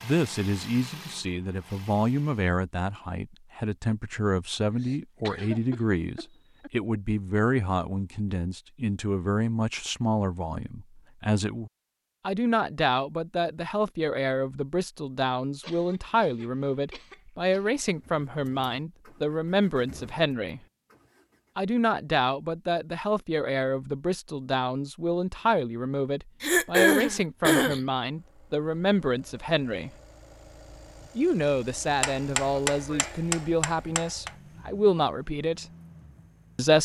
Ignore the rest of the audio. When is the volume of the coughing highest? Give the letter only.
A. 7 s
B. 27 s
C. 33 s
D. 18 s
B.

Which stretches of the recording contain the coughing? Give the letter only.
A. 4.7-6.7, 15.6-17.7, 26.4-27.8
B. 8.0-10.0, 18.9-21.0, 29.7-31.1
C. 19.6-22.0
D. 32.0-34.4
A.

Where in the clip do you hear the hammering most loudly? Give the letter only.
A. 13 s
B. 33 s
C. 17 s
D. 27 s
B.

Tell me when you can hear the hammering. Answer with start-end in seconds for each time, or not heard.
32.0-34.4.